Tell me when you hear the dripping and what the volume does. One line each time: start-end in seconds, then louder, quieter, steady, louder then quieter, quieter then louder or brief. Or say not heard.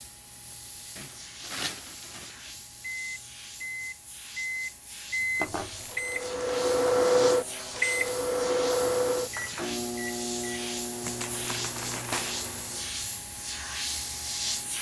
not heard.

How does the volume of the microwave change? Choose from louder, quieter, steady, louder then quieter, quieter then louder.
louder then quieter.